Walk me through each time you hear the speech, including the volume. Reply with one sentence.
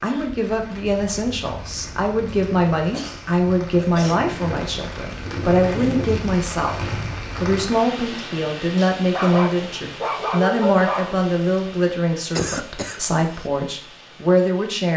You can hear the speech from 0.0 to 14.9 s, at a steady volume.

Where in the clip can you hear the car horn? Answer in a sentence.
The car horn can't be heard in this clip.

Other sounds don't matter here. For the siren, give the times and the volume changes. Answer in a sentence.
The siren can't be heard in this clip.